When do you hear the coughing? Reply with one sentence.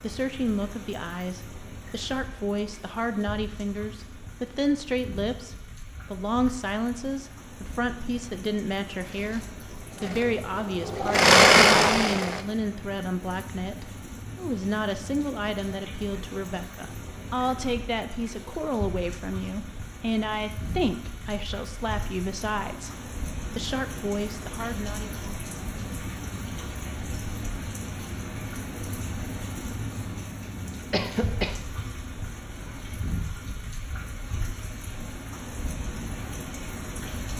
The coughing can be heard from 30.9 to 31.6 s.